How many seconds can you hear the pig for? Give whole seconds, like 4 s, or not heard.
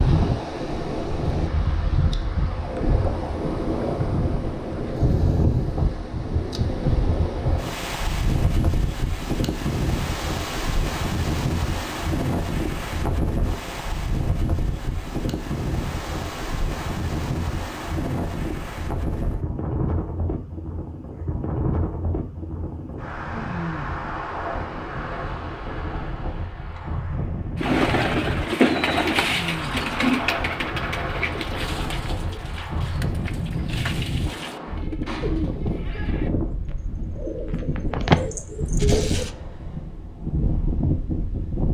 not heard.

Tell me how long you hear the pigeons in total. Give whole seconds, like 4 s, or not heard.
12 s.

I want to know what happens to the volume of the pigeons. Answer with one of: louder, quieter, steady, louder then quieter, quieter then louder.
quieter then louder.